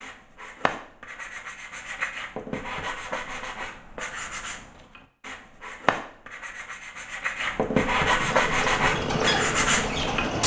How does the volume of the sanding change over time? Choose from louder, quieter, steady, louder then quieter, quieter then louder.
louder.